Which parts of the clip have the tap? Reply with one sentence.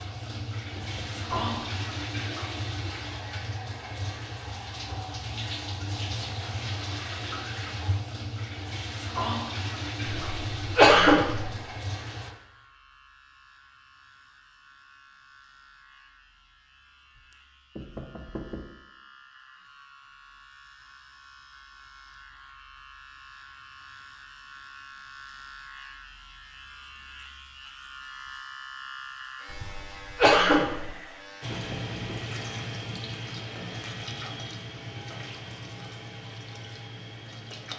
You can hear the tap from 0.0 to 12.3 s and from 31.4 to 37.7 s.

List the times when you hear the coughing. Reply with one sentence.
The coughing can be heard from 10.1 to 11.5 s and from 29.5 to 30.9 s.